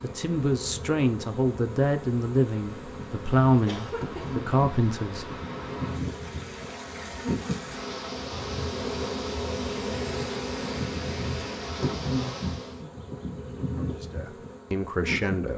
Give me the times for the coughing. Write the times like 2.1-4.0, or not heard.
3.6-4.6.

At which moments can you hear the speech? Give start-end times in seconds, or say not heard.
0.0-5.3, 13.7-15.5.